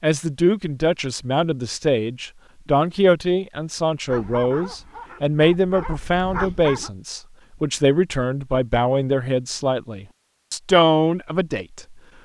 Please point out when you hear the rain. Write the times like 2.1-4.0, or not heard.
not heard.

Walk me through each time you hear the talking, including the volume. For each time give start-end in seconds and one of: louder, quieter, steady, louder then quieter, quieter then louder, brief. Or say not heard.
0.0-11.9 steady.